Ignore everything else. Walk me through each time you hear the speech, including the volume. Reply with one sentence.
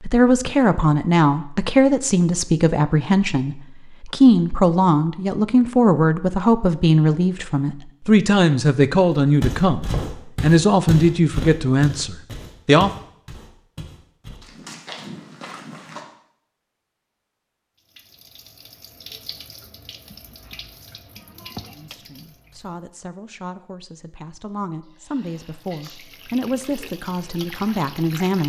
You can hear the speech from 0.0 to 12.9 s, at a steady volume; and from 21.7 to 28.4 s, getting louder.